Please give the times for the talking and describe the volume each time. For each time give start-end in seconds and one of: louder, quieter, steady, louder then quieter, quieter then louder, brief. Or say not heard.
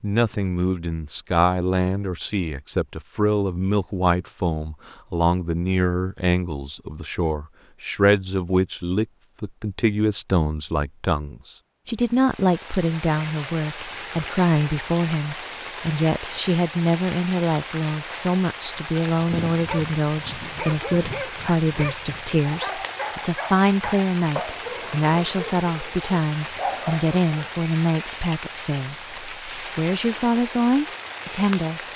0.0-31.8 steady.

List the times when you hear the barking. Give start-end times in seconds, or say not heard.
19.1-27.5.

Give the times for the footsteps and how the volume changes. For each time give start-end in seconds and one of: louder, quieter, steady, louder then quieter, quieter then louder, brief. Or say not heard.
not heard.